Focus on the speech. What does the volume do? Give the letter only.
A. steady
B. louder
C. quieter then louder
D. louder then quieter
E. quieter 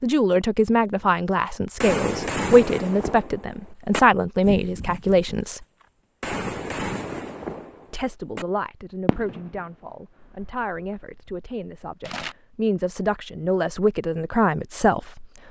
C.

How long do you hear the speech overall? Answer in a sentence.
You can hear the speech for 13 seconds altogether.